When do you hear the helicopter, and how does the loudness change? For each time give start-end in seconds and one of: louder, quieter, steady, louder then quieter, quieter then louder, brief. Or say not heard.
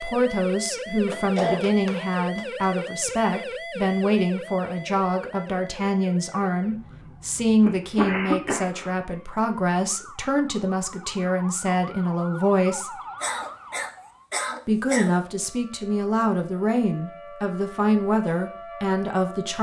not heard.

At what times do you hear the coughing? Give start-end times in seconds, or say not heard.
1.1-2.9, 7.7-8.9, 13.2-15.2.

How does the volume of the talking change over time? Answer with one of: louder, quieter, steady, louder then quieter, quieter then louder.
steady.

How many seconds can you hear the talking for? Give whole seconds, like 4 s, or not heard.
18 s.